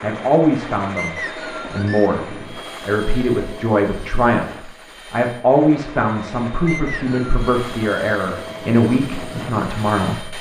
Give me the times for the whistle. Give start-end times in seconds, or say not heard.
0.9-2.1, 6.7-7.5.